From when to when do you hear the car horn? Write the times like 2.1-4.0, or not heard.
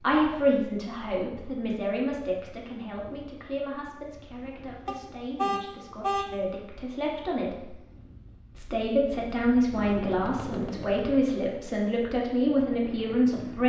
4.8-6.3.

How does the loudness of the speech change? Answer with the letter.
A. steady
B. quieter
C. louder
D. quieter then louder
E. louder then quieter
D.